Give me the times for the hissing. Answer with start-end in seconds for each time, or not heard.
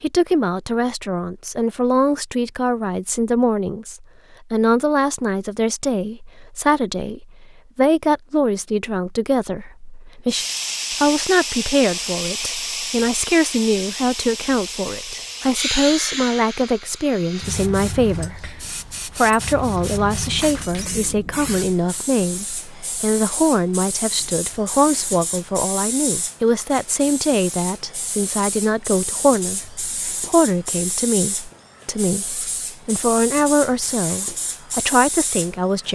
10.2-35.8.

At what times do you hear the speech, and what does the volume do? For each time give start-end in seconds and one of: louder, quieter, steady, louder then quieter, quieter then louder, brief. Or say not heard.
0.0-35.8 steady.